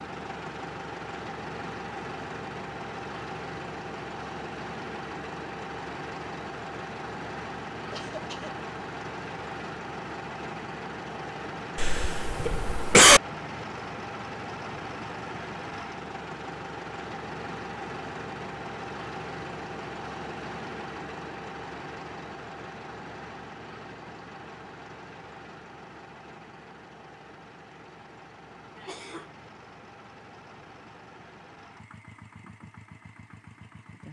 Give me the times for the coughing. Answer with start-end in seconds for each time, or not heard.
7.9-8.6, 11.8-13.2, 28.8-29.3.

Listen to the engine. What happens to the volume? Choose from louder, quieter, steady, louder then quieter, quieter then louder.
quieter.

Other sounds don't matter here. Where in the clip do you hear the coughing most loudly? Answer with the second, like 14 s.
13 s.